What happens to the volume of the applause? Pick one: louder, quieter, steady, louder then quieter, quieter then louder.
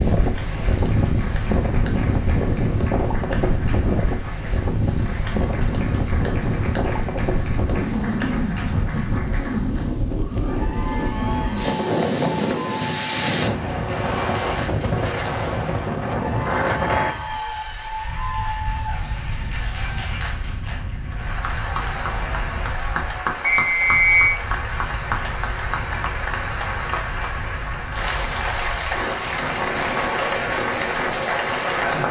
louder.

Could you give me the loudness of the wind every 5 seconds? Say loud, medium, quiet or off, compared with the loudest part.
loud, loud, loud, loud, quiet, medium, loud.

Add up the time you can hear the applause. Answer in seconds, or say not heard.
32 s.